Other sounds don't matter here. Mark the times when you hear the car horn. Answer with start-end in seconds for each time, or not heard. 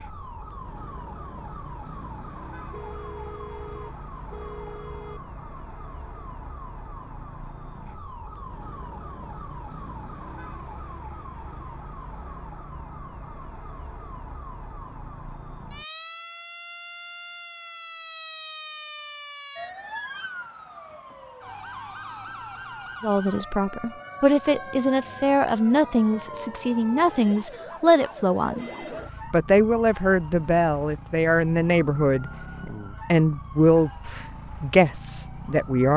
2.7-5.2.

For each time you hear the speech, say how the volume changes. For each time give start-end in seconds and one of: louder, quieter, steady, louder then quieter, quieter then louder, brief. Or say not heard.
23.0-28.7 steady
29.3-35.9 steady.